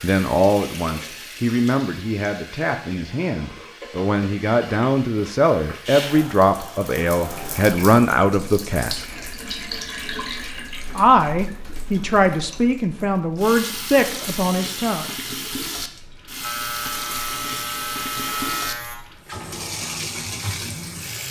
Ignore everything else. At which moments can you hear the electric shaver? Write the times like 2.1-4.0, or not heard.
16.4-19.0.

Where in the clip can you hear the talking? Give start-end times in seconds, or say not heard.
0.0-9.1, 10.9-15.1.